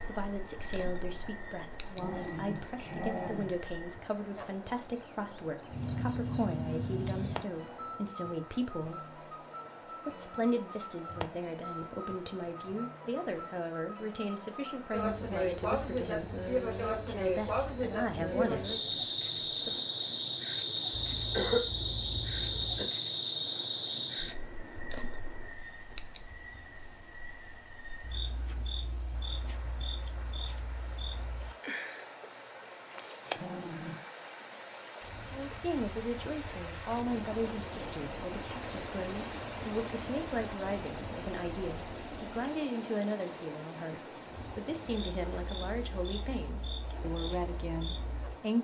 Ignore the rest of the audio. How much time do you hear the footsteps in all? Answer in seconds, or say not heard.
not heard.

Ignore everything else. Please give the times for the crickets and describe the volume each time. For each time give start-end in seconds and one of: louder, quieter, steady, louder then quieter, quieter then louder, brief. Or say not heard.
0.0-48.5 quieter.